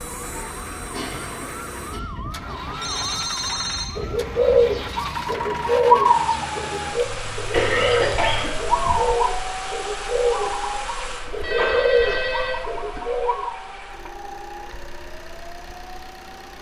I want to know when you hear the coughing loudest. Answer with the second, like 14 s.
8 s.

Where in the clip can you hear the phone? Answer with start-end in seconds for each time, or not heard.
2.7-3.9, 7.0-8.5, 11.2-13.0.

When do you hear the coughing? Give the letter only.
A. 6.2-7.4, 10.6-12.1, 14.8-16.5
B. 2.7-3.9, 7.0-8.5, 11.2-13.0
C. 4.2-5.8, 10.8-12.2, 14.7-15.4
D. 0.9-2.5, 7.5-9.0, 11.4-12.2
D.